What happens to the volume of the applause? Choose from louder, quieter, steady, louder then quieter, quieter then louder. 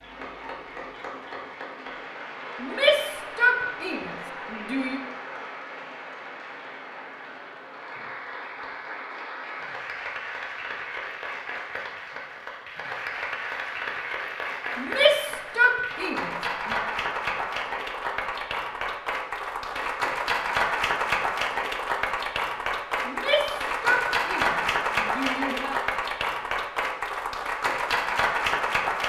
louder.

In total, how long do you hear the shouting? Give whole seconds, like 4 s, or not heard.
7 s.